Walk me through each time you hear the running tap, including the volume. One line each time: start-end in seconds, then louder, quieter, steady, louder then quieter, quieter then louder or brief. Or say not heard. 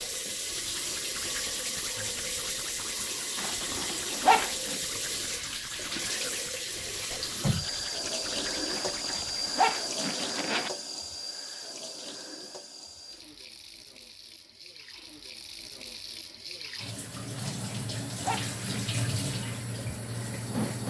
0.0-20.8 quieter then louder.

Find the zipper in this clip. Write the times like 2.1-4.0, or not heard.
3.4-4.8, 8.7-10.7, 17.6-18.9.